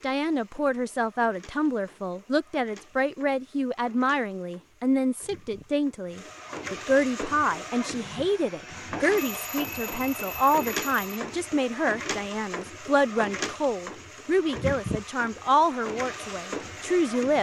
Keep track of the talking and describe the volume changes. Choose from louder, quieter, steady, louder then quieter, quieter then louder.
steady.